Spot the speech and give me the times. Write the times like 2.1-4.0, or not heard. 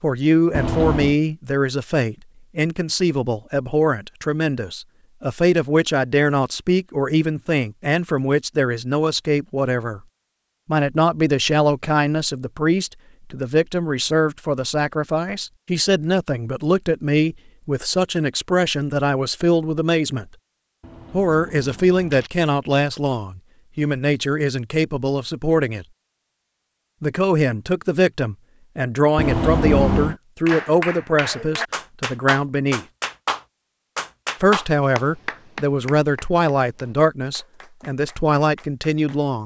0.0-10.0, 10.7-20.2, 21.1-25.9, 27.0-32.9, 34.4-39.4.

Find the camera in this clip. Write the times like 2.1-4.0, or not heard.
0.5-1.1, 20.8-22.3, 29.1-30.1.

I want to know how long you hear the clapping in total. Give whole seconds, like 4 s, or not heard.
9 s.